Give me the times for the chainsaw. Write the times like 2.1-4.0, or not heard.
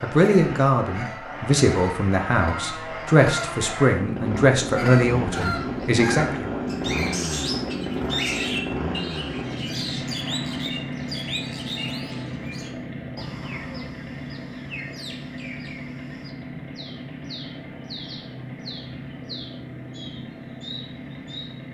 0.0-21.6.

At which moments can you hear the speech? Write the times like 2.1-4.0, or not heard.
0.0-6.6.